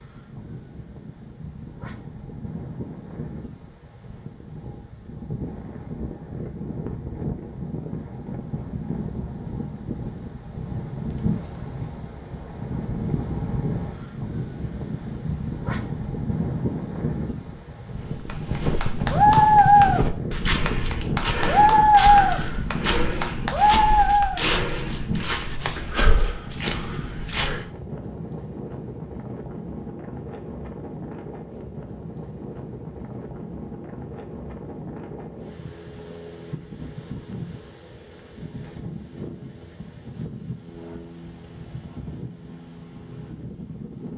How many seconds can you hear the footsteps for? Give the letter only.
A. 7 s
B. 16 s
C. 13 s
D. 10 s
D.